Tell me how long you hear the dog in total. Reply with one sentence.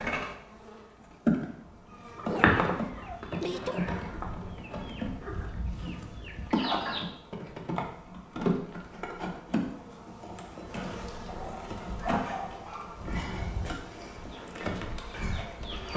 The dog can be heard for 3 seconds in total.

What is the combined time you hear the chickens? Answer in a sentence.
The chickens can be heard for 7 seconds in total.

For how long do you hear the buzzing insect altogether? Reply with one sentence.
The buzzing insect can be heard for 16 seconds in total.